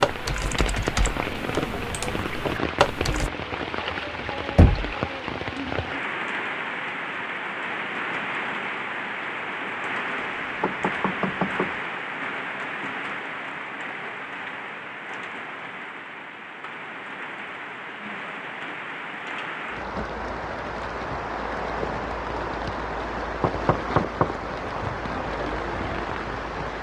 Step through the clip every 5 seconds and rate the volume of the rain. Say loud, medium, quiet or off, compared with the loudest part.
loud, loud, loud, medium, loud, loud.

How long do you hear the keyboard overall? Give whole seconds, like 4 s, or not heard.
3 s.